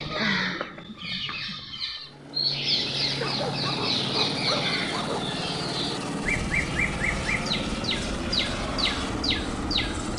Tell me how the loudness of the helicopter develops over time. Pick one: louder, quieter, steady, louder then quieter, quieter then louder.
steady.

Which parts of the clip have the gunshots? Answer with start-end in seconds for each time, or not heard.
not heard.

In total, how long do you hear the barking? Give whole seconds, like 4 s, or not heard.
2 s.